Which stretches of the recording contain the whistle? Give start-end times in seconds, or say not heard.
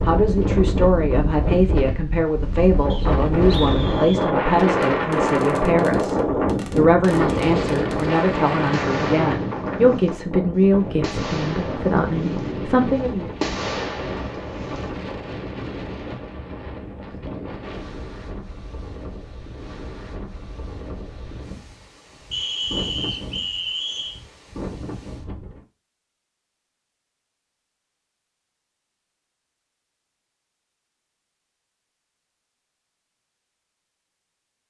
2.9-4.3, 22.3-24.2.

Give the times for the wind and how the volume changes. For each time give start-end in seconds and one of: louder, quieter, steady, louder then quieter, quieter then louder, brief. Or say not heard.
0.0-25.6 quieter.